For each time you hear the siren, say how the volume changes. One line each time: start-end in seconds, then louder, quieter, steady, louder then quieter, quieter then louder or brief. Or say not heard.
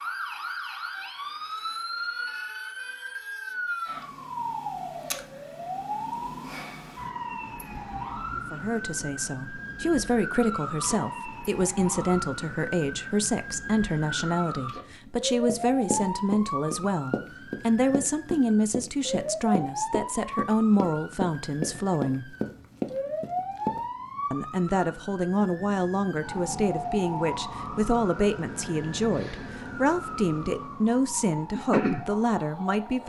0.0-33.0 steady.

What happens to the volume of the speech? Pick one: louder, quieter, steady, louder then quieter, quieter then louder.
steady.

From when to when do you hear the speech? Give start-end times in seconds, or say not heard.
8.5-22.4, 24.3-33.0.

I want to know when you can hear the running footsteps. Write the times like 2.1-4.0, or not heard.
15.4-23.9.